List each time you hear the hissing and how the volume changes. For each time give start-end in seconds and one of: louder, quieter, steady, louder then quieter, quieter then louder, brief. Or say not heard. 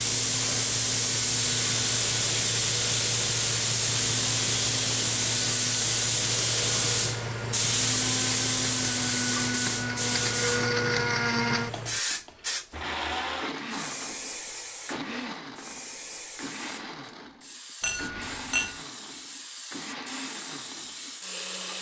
0.0-21.7 quieter.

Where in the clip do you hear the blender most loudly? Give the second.
11 s.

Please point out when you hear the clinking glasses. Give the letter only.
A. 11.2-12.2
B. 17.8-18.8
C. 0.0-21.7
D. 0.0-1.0
B.